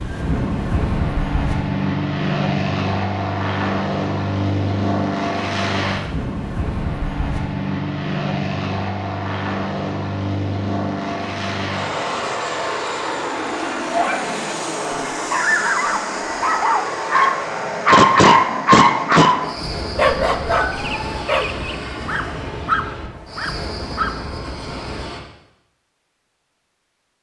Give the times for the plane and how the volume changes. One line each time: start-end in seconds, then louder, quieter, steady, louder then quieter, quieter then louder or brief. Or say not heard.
0.0-25.2 quieter.